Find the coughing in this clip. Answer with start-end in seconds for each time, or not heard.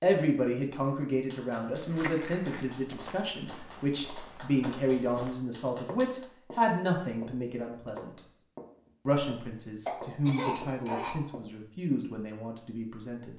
9.8-11.4.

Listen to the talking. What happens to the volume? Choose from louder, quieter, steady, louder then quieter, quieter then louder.
quieter.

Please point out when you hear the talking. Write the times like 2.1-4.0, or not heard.
0.0-8.2, 9.1-13.3.